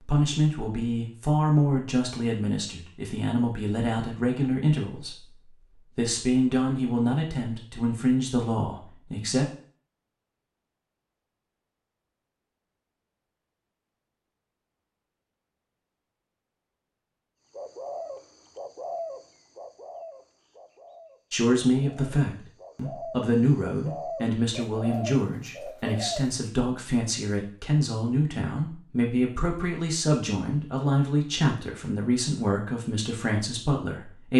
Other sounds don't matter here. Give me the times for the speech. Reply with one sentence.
The speech can be heard from 0.0 to 9.4 s and from 21.3 to 34.3 s.